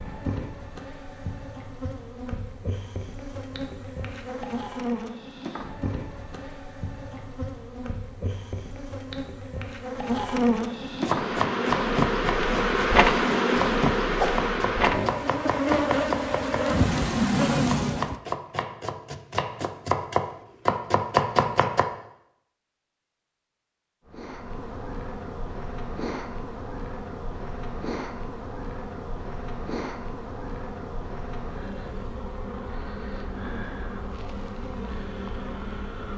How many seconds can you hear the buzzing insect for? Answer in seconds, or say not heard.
30 s.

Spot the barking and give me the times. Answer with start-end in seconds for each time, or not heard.
not heard.